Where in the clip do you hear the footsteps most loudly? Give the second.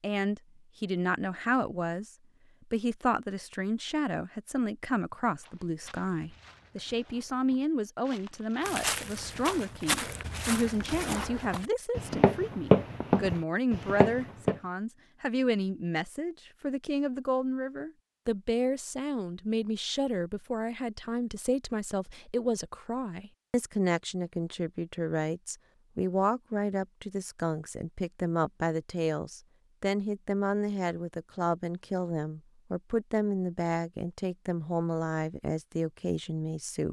13 s.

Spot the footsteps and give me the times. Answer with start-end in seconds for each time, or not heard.
5.4-14.6.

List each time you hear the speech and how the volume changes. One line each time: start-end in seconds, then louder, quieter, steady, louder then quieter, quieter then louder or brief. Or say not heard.
0.0-2.1 brief
2.7-36.8 steady.